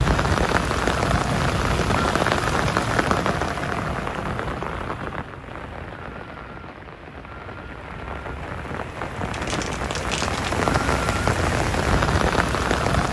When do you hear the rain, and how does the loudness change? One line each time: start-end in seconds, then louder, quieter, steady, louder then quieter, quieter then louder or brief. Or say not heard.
0.0-13.0 quieter then louder.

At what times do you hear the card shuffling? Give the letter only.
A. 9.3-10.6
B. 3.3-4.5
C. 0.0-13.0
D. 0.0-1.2
A.